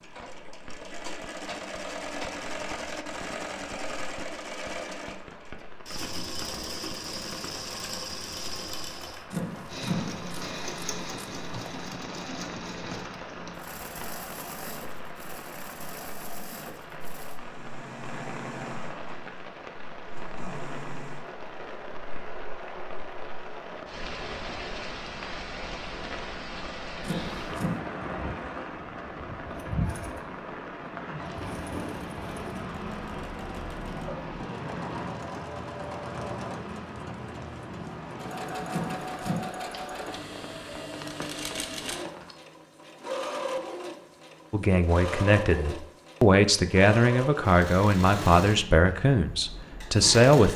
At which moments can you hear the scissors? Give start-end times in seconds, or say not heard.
9.3-11.9, 27.0-27.8, 38.6-39.5.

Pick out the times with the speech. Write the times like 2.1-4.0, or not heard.
44.5-50.5.